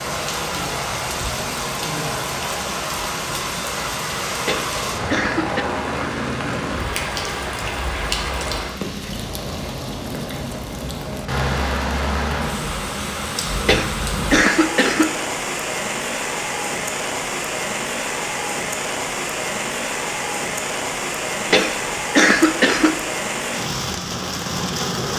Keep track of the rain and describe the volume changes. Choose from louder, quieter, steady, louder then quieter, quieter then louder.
steady.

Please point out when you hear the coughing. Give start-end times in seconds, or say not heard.
4.4-5.7, 13.7-15.2, 21.4-23.0.